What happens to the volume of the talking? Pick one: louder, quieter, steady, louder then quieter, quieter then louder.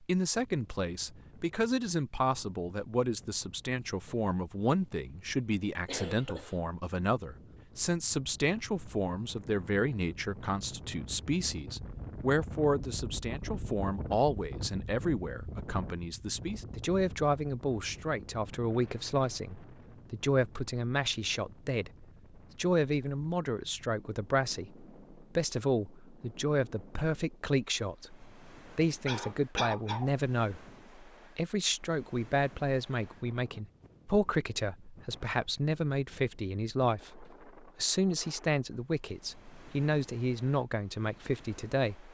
steady.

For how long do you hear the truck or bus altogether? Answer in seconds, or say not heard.
not heard.